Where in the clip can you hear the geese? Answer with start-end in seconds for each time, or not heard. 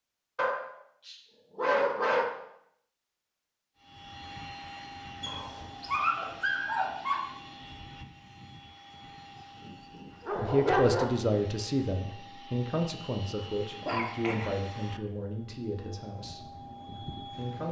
not heard.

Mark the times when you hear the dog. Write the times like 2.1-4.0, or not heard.
0.3-2.2, 5.2-7.2, 10.2-11.1, 13.8-14.6.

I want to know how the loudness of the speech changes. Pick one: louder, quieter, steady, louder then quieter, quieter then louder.
quieter.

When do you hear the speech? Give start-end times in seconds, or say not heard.
10.3-17.6.